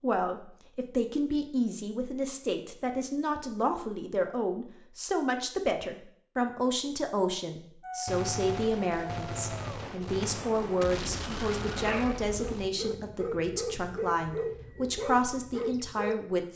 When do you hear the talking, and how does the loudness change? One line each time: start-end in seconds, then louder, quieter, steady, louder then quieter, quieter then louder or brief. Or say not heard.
0.0-16.5 steady.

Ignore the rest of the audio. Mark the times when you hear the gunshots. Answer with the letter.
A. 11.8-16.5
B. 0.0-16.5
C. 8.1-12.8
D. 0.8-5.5
C.